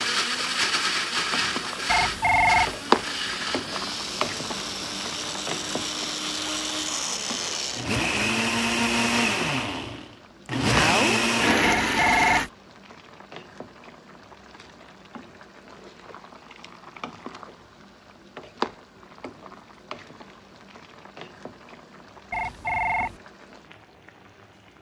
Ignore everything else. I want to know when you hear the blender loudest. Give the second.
11 s.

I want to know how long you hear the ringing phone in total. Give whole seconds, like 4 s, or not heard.
3 s.